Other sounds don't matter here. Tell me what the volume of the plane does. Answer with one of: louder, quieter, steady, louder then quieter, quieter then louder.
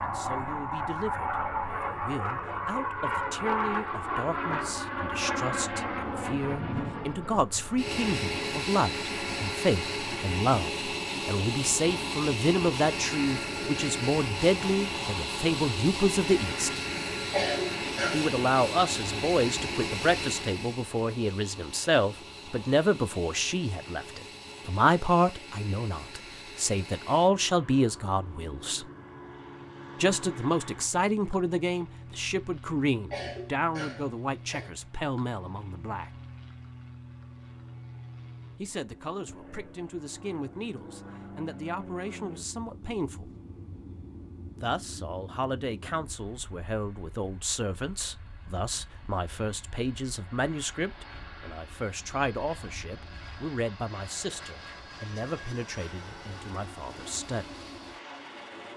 quieter.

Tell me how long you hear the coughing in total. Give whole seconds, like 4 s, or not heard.
3 s.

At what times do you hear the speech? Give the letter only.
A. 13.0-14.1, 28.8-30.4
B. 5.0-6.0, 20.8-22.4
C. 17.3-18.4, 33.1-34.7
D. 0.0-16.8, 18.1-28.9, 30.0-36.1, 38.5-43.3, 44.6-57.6
D.